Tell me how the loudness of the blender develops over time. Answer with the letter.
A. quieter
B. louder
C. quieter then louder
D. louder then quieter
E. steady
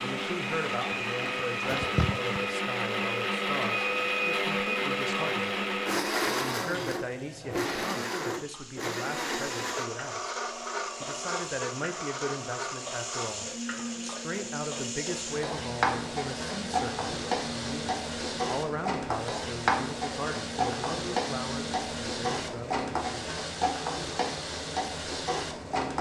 A.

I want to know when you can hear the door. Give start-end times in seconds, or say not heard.
not heard.